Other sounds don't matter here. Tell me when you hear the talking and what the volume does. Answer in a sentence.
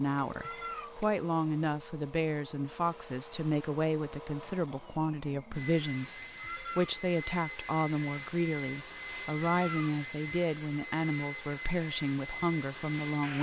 The talking can be heard from 0.0 to 13.3 s, at a steady volume.